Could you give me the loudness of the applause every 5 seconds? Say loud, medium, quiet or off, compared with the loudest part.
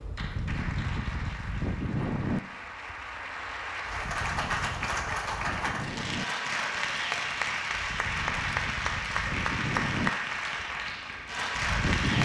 medium, loud, loud.